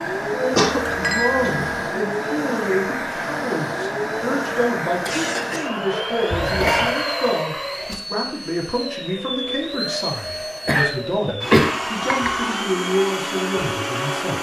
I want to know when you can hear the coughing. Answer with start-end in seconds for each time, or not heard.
0.6-1.7, 5.0-5.7, 10.7-11.8.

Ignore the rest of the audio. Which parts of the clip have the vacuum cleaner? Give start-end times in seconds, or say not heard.
0.0-14.3.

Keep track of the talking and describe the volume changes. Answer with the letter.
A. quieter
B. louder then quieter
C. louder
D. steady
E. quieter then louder
D.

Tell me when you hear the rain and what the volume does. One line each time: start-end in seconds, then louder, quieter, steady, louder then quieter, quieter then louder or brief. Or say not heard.
not heard.